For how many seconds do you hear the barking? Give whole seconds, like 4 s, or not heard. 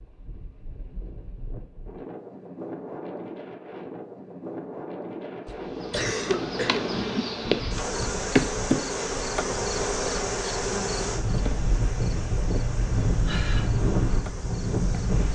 not heard.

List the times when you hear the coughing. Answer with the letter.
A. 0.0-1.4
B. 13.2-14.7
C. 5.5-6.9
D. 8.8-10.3
C.